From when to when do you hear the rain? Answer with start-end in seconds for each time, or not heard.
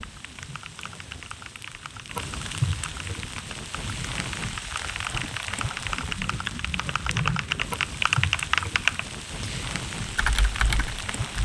0.0-11.4.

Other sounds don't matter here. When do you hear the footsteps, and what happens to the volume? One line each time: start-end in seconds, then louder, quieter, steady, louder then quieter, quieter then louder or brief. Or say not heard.
not heard.